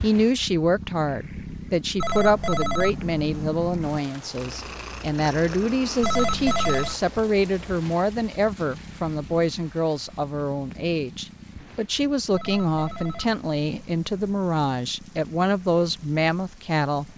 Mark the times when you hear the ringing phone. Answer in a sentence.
You can hear the ringing phone from 2.0 to 4.0 s, from 6.0 to 7.0 s and from 12.3 to 14.3 s.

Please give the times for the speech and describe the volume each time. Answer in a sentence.
The speech can be heard from 0.0 to 17.1 s, at a steady volume.